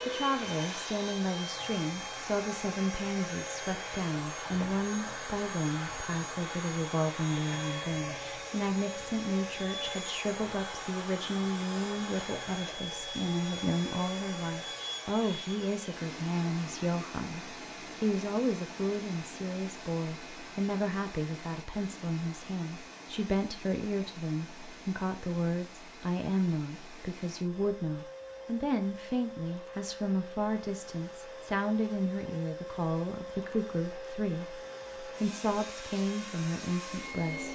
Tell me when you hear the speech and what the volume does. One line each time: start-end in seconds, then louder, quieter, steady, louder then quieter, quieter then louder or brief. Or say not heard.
0.0-37.4 steady.